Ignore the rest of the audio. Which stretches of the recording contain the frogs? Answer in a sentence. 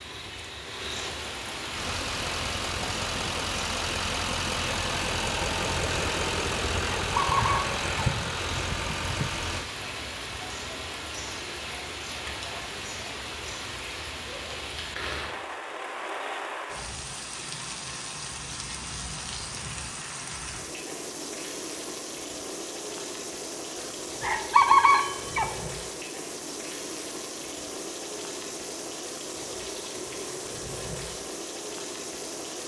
You can't hear the frogs here.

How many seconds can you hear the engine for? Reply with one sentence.
The engine can be heard for 8 seconds in total.